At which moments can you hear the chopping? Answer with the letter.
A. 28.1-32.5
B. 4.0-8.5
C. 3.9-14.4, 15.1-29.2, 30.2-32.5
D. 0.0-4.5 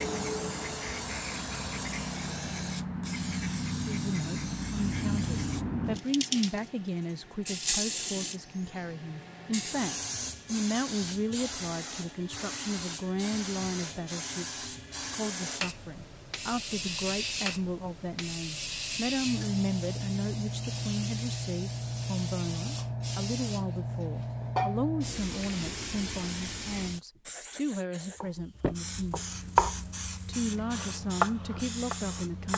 A.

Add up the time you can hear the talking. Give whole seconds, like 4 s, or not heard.
27 s.